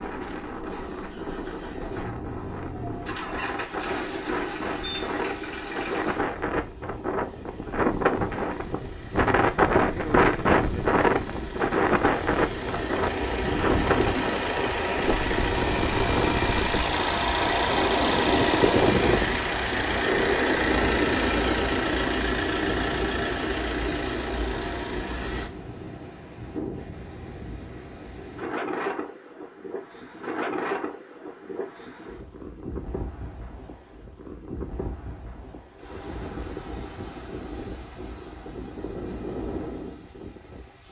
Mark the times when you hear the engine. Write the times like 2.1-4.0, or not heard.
0.0-25.5.